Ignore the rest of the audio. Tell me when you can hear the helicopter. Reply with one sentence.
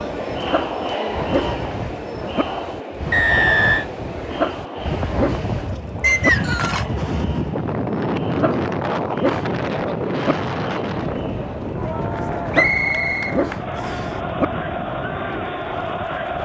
You can't hear the helicopter here.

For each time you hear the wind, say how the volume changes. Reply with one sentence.
You can hear the wind from 0.0 to 16.4 s, getting louder then quieter.